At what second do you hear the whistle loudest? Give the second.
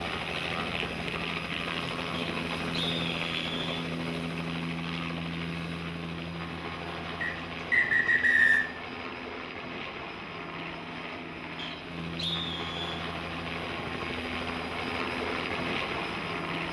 8 s.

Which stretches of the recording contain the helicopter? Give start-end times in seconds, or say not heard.
0.0-16.6.